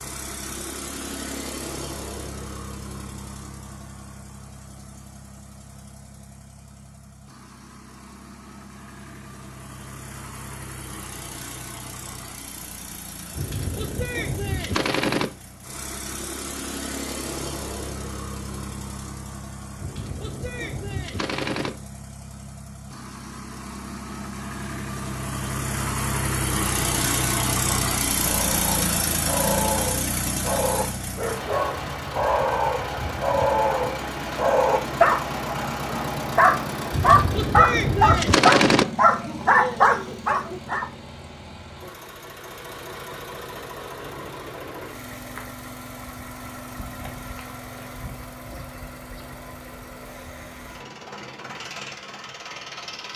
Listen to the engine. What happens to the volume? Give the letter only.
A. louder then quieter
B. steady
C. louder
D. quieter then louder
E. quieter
A.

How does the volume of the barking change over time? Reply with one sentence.
The volume of the barking goes up.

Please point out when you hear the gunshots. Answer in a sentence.
You can hear the gunshots from 13.3 to 15.3 s, from 19.8 to 21.7 s and from 36.9 to 38.9 s.